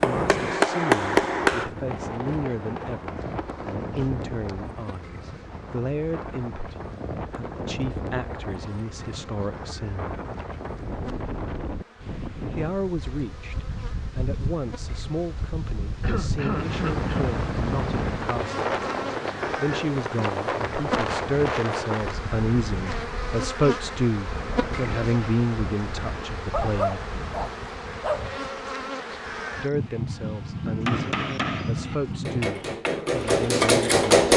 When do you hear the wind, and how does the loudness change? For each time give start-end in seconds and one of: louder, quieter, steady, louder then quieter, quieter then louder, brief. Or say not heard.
0.0-27.5 louder then quieter.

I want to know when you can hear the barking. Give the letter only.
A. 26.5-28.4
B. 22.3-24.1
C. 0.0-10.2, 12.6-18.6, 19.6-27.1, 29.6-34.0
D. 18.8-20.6
A.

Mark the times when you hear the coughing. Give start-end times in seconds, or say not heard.
16.0-17.4.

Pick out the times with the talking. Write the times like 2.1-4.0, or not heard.
0.0-10.2, 12.6-18.6, 19.6-27.1, 29.6-34.0.